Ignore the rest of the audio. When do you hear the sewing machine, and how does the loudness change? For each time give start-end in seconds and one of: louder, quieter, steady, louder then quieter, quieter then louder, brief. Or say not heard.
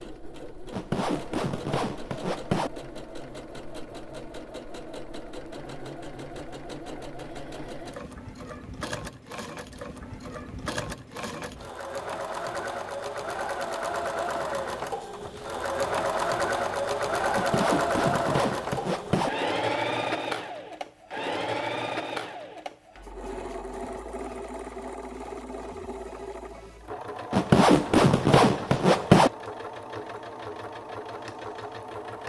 0.0-32.2 louder then quieter.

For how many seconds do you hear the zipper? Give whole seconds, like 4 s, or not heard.
6 s.